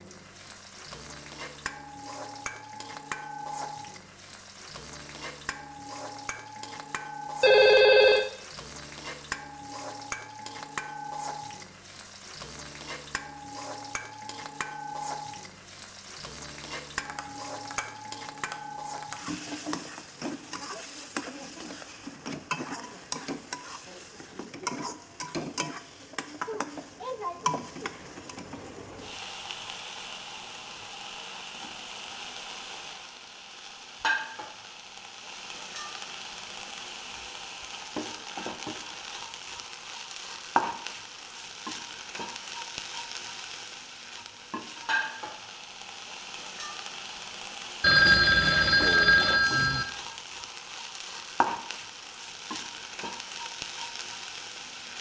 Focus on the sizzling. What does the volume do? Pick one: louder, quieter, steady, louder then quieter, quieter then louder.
steady.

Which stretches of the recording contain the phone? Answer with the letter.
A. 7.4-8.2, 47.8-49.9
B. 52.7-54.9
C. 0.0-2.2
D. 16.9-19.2
A.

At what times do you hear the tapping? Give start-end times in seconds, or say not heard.
16.9-19.2.